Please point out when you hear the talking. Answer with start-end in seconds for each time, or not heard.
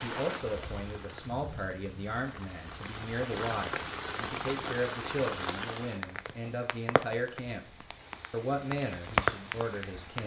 0.0-7.7, 8.3-10.2.